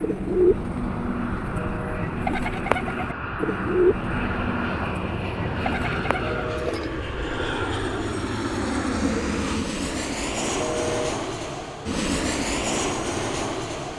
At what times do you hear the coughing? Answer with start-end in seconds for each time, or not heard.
not heard.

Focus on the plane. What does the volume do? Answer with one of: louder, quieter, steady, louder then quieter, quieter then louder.
louder.